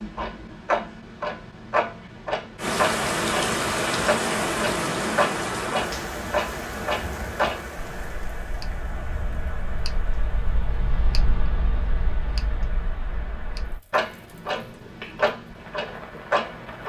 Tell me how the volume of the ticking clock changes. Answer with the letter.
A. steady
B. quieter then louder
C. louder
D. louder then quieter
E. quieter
B.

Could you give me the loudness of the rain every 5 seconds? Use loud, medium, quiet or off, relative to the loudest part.
loud, medium, quiet, quiet.